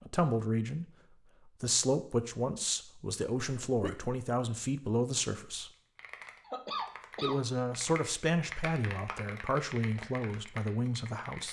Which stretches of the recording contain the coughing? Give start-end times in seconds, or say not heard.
3.4-4.0, 6.5-7.4.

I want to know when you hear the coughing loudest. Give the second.
7 s.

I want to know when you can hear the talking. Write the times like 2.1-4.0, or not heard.
0.0-0.8, 1.4-5.7, 7.2-11.4.